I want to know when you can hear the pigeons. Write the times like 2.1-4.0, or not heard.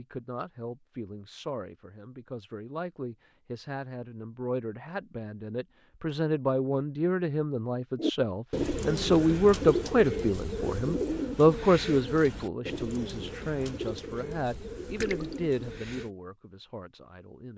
8.0-16.1.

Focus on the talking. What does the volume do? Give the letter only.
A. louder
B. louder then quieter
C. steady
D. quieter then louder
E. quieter
B.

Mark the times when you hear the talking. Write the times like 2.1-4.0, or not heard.
0.0-17.5.